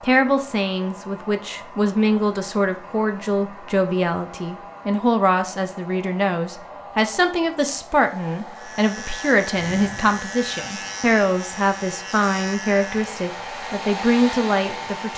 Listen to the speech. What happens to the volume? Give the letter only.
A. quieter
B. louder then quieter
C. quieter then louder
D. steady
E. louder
D.